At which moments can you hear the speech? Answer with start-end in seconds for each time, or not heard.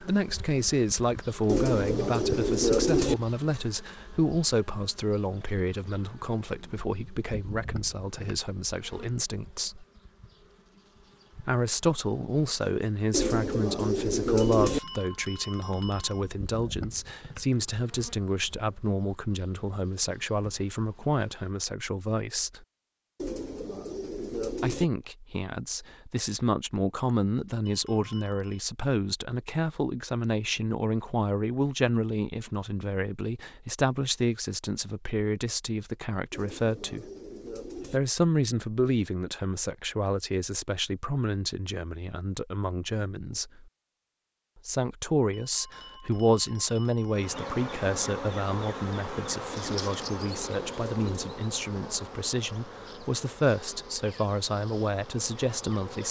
0.0-9.8, 11.3-22.6, 24.6-37.1, 37.9-43.6, 44.6-56.0.